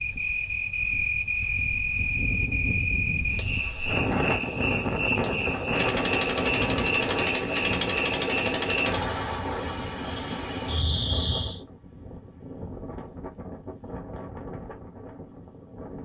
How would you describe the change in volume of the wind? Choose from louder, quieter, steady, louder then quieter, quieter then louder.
louder then quieter.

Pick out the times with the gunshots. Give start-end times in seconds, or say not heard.
5.7-9.2.